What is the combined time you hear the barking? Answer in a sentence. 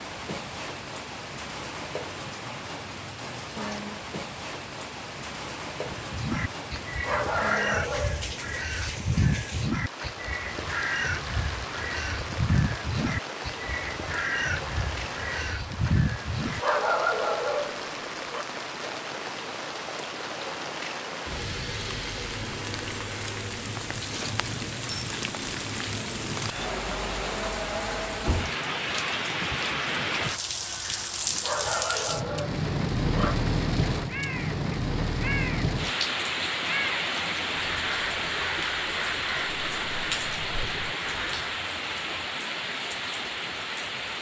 You can hear the barking for 5 seconds altogether.